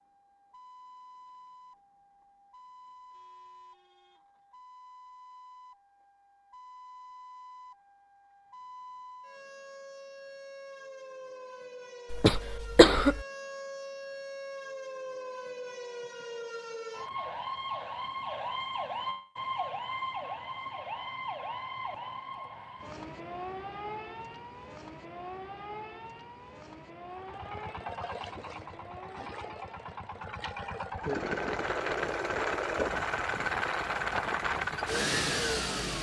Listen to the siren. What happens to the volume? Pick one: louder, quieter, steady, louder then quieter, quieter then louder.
louder then quieter.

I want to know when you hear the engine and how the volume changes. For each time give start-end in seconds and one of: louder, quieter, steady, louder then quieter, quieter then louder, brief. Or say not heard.
27.1-35.9 louder.